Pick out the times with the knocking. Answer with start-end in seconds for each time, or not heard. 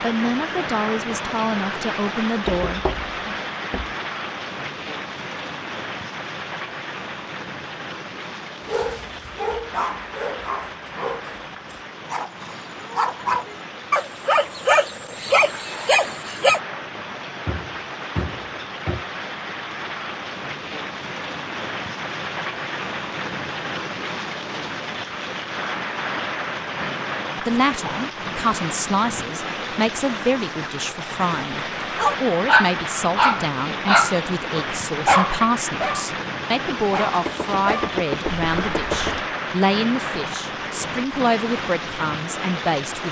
2.5-4.0, 17.4-19.1, 37.2-39.1.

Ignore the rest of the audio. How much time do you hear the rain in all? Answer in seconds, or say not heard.
43 s.